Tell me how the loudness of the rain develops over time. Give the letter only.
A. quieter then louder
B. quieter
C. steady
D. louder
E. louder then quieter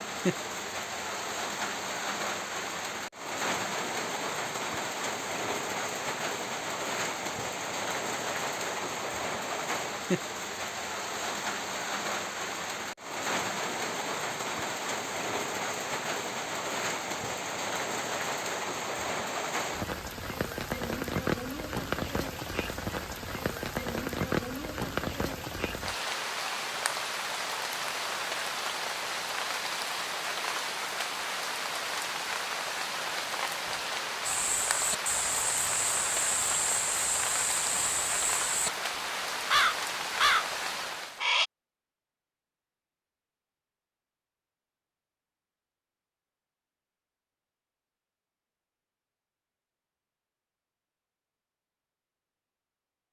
C.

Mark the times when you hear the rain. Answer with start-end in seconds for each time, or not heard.
0.0-41.3.